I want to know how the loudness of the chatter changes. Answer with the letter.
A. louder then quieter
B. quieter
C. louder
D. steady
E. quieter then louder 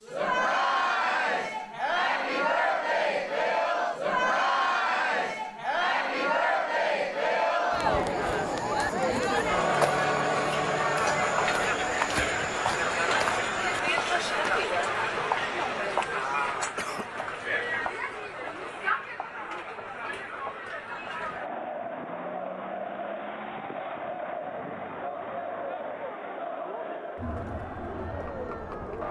B.